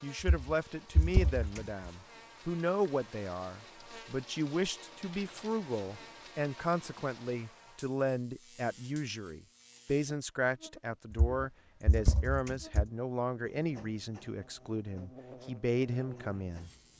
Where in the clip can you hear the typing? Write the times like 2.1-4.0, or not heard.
0.3-1.9, 11.2-12.8.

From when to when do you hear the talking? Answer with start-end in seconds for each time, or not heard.
0.0-16.7.